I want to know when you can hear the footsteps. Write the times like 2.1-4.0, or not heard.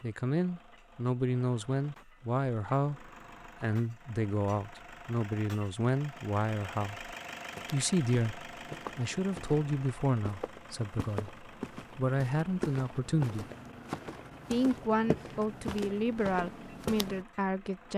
7.2-17.2.